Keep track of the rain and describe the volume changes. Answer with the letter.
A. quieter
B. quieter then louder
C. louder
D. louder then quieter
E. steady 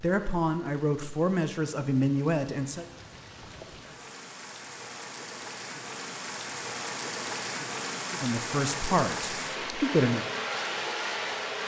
C.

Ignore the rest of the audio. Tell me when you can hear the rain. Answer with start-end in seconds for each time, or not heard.
0.0-11.6.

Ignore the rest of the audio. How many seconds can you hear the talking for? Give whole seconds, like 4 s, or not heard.
5 s.